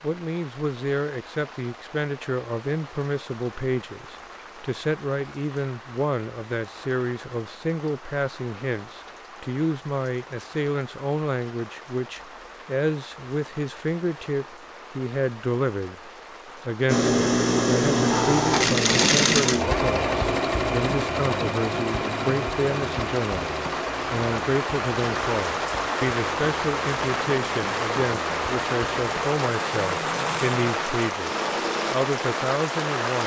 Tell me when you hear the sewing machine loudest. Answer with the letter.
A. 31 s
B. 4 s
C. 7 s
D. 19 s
D.